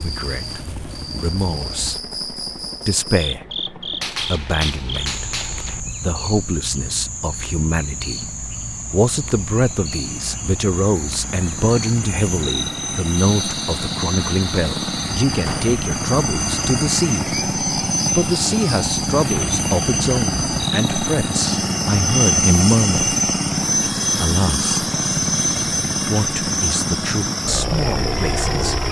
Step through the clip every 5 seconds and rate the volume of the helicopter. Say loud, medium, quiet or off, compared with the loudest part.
quiet, quiet, medium, loud, loud, loud.